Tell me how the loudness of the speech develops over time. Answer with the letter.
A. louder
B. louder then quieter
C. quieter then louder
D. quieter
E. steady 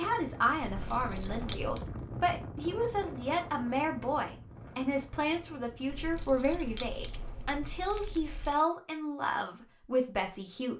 E.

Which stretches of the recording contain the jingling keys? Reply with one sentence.
The jingling keys can be heard from 0.7 to 1.9 s and from 5.9 to 8.6 s.